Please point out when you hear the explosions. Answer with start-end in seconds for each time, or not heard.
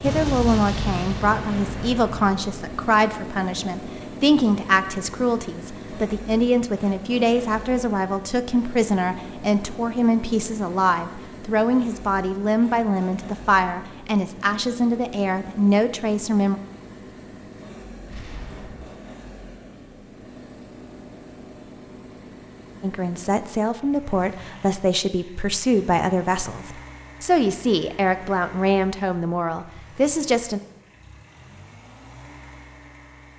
0.0-2.8, 18.1-18.9.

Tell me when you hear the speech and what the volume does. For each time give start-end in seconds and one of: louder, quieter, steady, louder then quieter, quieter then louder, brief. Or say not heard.
0.0-16.6 steady
22.8-30.6 steady.